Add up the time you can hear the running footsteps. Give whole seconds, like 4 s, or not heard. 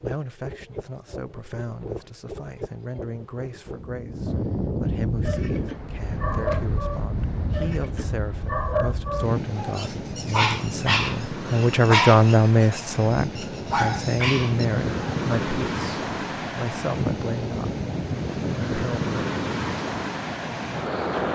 not heard.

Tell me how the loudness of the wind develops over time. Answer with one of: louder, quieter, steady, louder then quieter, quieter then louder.
louder.